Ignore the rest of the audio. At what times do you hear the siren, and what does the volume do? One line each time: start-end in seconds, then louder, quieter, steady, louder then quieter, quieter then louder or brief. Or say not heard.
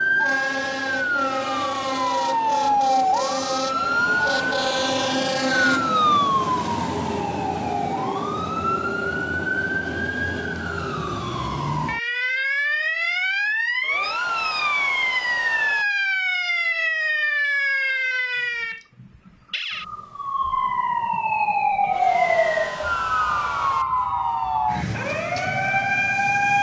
0.0-26.5 steady.